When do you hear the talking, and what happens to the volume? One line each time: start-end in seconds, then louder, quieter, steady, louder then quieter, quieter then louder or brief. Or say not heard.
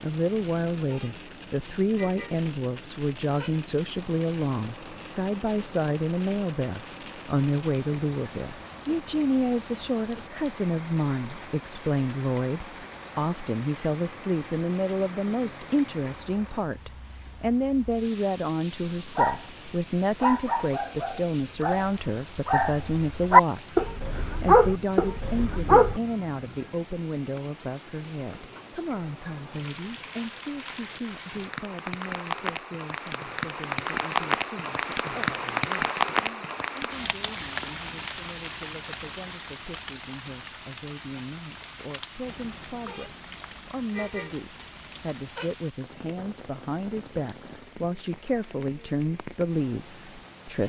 0.0-50.6 quieter then louder.